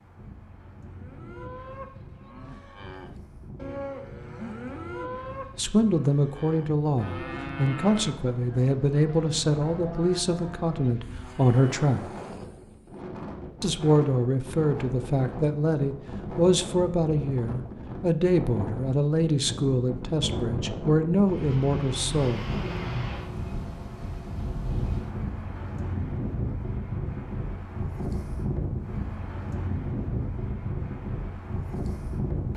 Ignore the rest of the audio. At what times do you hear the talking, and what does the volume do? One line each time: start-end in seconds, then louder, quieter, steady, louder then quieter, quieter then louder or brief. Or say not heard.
5.5-12.1 steady
13.6-22.4 steady.